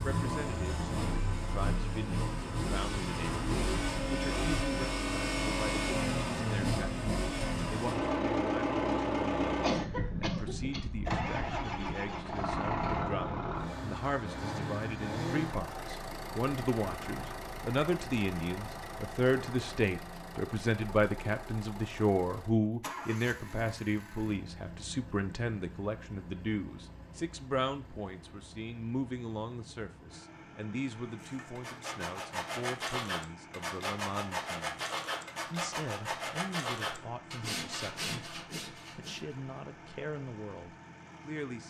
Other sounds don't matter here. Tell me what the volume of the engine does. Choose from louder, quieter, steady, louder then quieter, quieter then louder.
quieter.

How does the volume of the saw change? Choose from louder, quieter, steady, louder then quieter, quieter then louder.
steady.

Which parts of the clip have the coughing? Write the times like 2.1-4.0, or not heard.
9.6-10.8.